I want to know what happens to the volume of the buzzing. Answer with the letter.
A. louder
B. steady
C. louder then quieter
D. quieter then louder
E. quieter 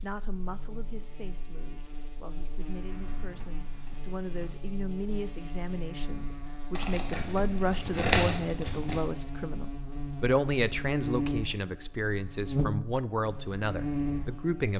A.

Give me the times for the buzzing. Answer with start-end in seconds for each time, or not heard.
0.0-14.7.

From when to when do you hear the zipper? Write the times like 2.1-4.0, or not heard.
not heard.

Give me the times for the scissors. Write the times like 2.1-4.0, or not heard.
6.8-9.0.